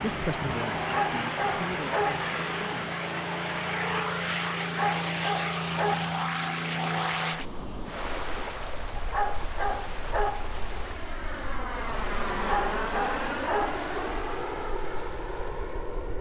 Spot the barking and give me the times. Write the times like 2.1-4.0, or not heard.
0.8-2.3, 4.6-6.2, 8.9-10.5, 12.3-13.8.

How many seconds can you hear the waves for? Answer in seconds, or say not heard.
9 s.